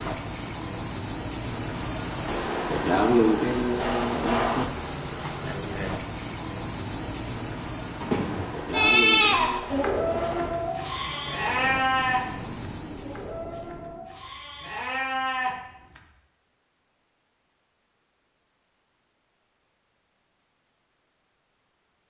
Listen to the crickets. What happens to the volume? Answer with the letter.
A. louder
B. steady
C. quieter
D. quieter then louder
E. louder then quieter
C.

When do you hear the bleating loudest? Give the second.
9 s.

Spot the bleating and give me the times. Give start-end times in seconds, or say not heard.
7.8-16.1.